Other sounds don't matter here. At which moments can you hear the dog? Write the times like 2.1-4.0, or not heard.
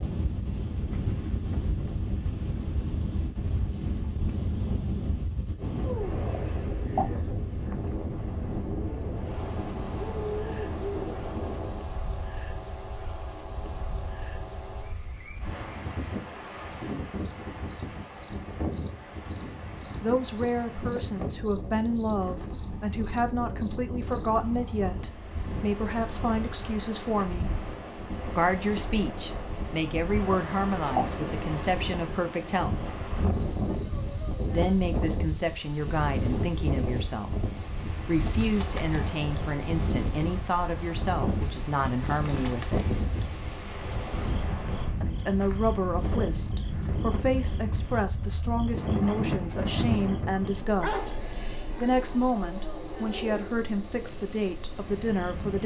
50.8-52.1.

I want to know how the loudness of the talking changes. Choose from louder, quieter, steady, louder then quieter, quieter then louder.
steady.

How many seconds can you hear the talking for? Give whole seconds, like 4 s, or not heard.
30 s.